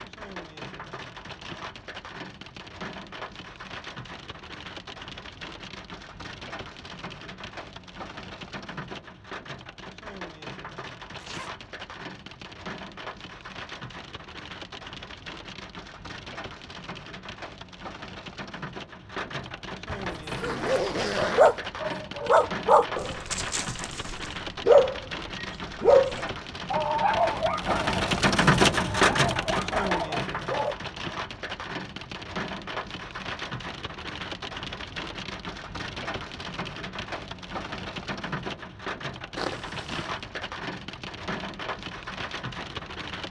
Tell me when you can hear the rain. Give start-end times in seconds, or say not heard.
0.0-43.2.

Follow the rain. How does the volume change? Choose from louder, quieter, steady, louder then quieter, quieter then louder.
louder then quieter.